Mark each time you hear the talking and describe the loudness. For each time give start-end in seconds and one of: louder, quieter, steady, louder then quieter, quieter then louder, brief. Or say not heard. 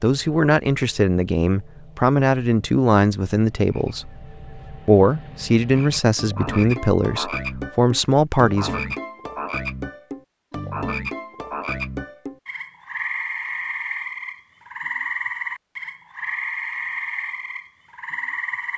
0.0-8.9 steady.